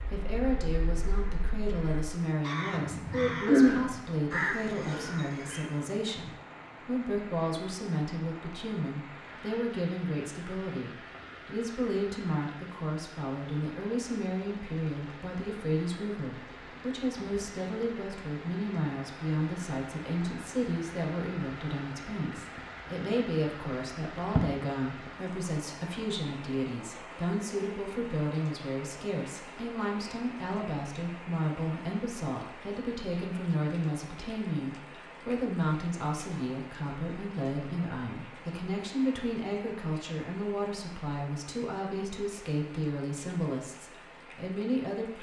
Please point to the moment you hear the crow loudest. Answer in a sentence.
The loudest moment of the crow is at 4 seconds.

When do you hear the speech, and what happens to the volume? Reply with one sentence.
You can hear the speech from 0.0 to 45.1 s, at a steady volume.